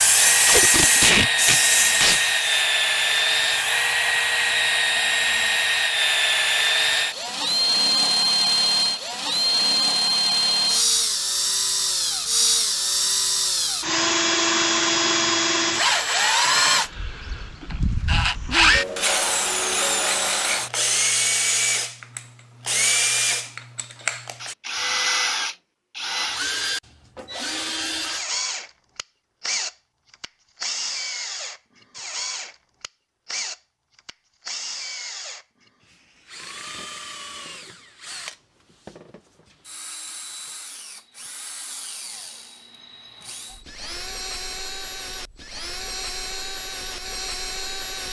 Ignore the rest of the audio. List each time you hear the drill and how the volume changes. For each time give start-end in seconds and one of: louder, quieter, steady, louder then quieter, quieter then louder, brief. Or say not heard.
0.0-48.0 quieter.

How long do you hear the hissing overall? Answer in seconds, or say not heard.
3 s.